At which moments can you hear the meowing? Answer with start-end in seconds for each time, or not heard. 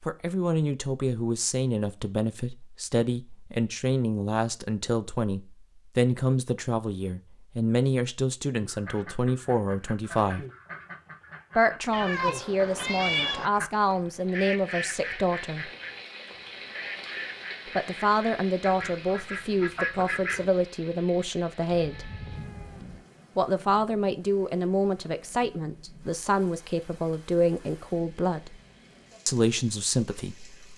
11.9-13.5, 21.7-23.1.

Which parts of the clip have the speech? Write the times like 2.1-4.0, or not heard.
0.0-10.4, 11.6-15.7, 17.8-22.1, 23.4-28.6, 29.2-30.7.